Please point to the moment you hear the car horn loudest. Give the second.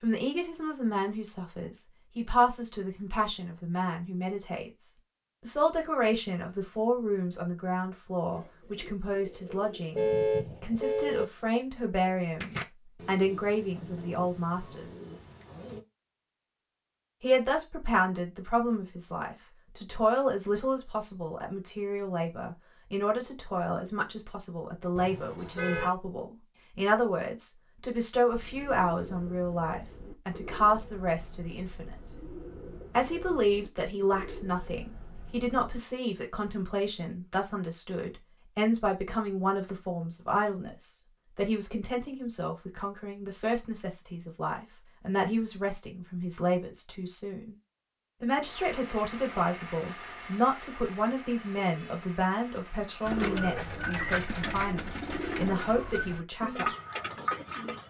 10 s.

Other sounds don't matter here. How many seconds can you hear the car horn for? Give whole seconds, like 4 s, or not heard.
3 s.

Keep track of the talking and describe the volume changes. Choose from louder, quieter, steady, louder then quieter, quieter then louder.
steady.